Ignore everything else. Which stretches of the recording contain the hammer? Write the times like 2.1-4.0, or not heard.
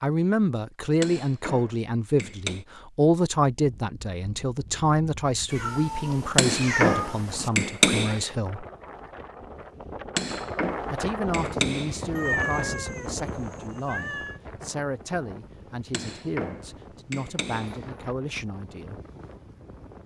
1.0-2.6, 6.3-8.2, 10.2-12.0, 15.9-17.8.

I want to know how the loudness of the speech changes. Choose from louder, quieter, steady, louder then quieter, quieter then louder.
quieter.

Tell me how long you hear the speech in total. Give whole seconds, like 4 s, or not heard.
17 s.